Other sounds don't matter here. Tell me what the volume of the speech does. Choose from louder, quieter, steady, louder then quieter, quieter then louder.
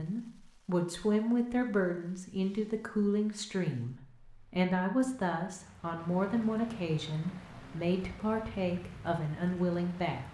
steady.